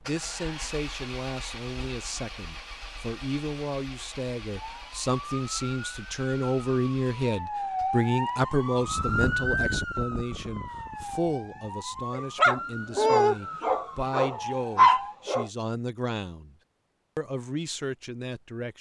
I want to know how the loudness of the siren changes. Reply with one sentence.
The volume of the siren goes up, then down.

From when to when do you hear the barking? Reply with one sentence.
You can hear the barking from 12.1 to 15.4 s.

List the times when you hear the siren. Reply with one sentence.
You can hear the siren from 4.5 to 15.2 s.